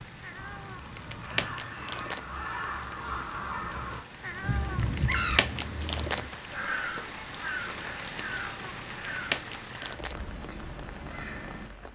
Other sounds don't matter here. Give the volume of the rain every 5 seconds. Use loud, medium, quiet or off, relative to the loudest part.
medium, loud, medium.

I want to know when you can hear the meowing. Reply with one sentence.
The meowing can be heard from 0.2 to 2.2 s, from 4.2 to 6.2 s and from 8.2 to 10.2 s.